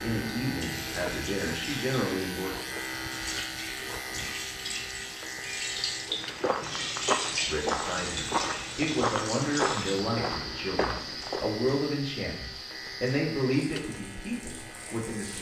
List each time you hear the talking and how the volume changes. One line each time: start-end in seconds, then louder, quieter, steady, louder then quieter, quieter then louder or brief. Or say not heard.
0.0-2.6 brief
7.5-15.3 steady.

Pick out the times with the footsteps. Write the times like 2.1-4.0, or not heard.
6.2-11.4.